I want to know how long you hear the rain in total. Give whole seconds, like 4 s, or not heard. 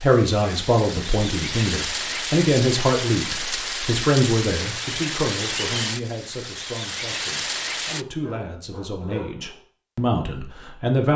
8 s.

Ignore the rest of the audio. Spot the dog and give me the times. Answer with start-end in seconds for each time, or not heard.
7.8-9.7.